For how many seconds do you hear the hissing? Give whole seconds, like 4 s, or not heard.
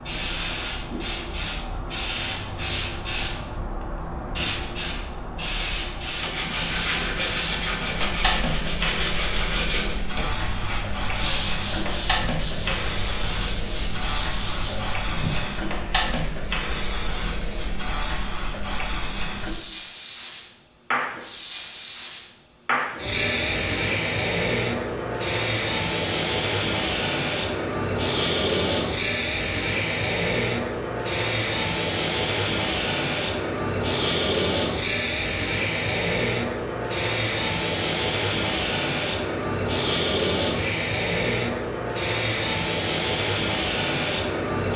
45 s.